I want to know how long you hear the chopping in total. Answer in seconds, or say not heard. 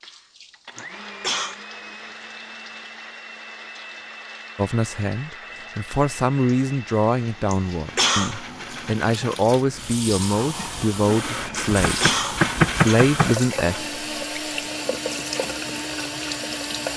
2 s.